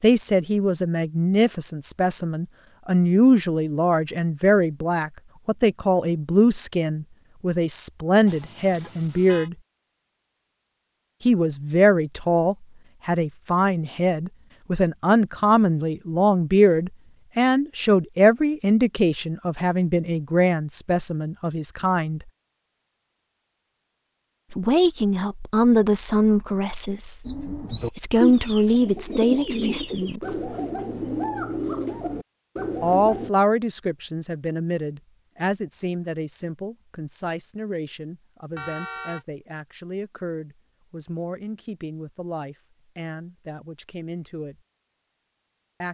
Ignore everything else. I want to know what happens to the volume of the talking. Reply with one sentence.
The volume of the talking goes down.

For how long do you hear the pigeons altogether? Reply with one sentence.
The pigeons can be heard for 6 seconds in total.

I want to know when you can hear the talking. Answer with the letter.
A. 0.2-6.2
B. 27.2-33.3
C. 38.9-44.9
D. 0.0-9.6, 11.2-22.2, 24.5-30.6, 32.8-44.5
D.